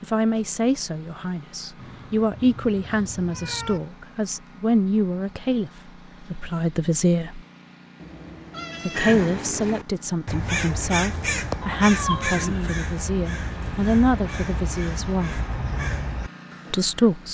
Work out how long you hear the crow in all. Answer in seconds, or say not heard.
8 s.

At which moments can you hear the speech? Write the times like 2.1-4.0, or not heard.
0.0-7.4, 8.8-15.4, 16.7-17.2.